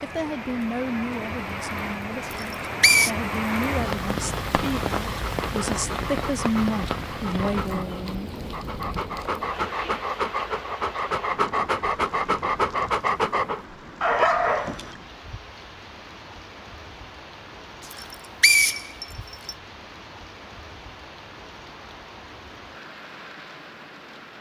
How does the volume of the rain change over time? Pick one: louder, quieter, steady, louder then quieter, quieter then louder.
quieter.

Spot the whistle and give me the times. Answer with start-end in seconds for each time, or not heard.
2.3-3.1, 17.9-19.6.